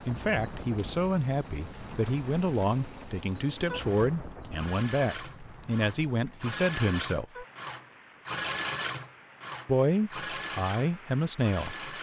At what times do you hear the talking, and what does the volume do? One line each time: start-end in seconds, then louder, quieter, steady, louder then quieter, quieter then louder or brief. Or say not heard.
0.1-7.5 steady
9.7-11.9 brief.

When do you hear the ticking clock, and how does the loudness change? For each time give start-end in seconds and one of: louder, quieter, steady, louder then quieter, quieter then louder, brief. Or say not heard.
not heard.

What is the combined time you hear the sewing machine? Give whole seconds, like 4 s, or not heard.
12 s.